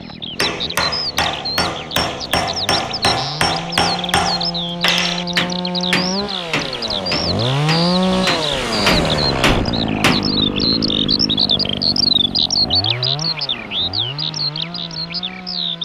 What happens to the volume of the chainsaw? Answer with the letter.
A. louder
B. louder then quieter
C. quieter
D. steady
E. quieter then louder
B.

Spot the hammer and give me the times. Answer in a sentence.
You can hear the hammer from 0.3 to 10.3 s.